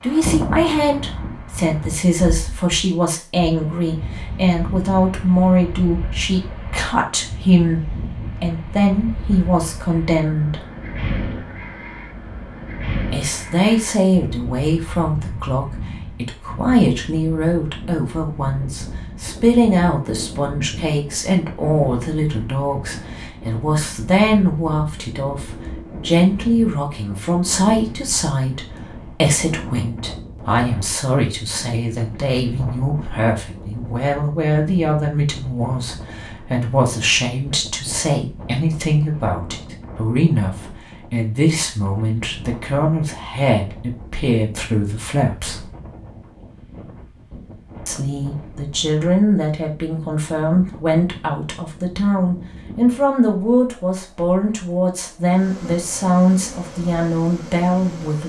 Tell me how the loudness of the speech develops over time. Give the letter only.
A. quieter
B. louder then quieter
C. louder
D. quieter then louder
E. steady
E.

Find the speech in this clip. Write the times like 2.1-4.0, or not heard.
0.0-10.6, 13.1-45.6, 47.9-58.2.